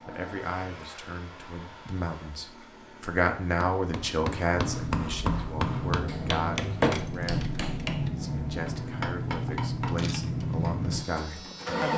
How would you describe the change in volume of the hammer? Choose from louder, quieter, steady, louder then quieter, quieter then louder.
quieter.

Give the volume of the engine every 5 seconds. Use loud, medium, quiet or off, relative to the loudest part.
medium, loud, loud.